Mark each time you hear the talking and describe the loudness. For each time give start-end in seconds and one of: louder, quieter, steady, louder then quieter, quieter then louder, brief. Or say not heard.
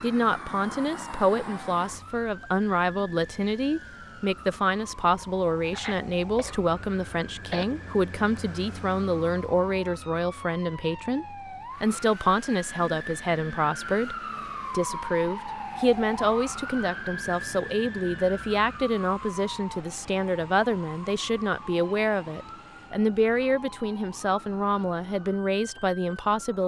0.0-26.6 steady.